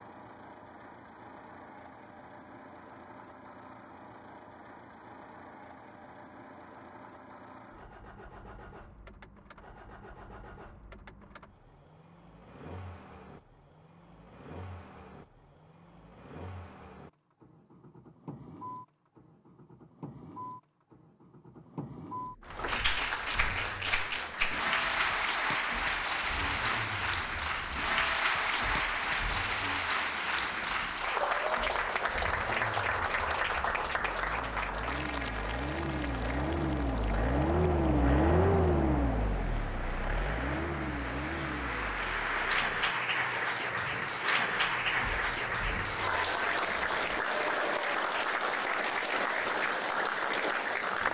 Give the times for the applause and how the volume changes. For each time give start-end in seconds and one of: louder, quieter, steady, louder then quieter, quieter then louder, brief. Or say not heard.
22.4-51.0 quieter then louder.